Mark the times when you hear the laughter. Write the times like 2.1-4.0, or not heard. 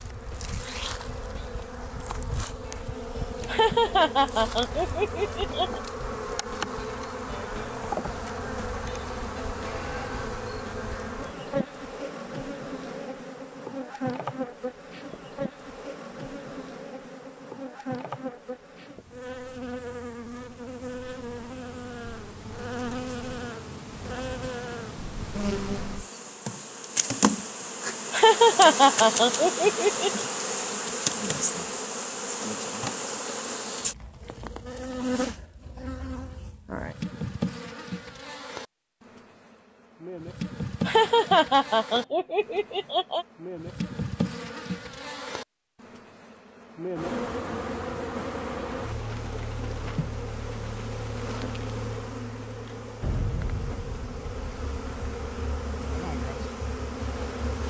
3.5-5.8, 28.1-30.2, 40.9-43.2.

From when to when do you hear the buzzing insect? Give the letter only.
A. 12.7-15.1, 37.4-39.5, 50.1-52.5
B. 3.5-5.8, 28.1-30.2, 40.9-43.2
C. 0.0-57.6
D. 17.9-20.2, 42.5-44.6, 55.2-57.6
C.